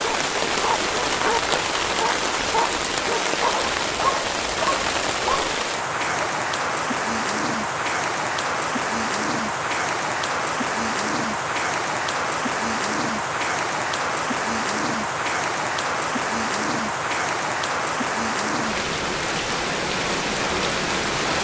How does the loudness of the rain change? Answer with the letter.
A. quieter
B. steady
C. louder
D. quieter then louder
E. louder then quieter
B.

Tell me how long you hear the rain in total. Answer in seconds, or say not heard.
21 s.